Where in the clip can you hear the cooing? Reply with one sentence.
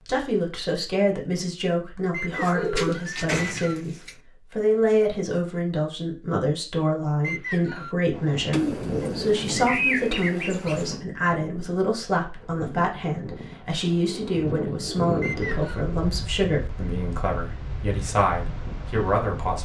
The cooing can be heard from 2.3 to 4.2 s, from 8.5 to 11.0 s and from 14.1 to 15.7 s.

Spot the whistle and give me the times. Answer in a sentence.
The whistle can be heard from 2.1 to 3.8 s, from 7.2 to 8.0 s and from 15.2 to 15.8 s.